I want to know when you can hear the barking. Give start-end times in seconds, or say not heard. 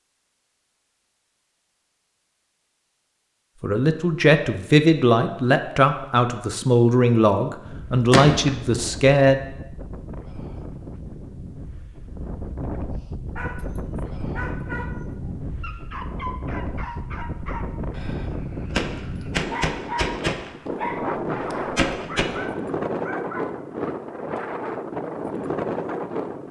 13.3-23.9.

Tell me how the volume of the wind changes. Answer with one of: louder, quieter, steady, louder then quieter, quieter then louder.
louder.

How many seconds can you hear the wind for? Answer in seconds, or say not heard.
19 s.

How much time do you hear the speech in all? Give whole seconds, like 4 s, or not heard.
6 s.